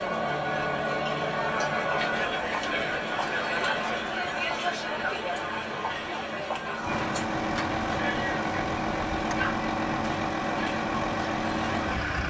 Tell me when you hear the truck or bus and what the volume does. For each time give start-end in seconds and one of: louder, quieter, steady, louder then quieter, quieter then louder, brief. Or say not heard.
0.0-12.2 louder.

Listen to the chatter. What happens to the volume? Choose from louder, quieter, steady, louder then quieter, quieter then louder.
quieter.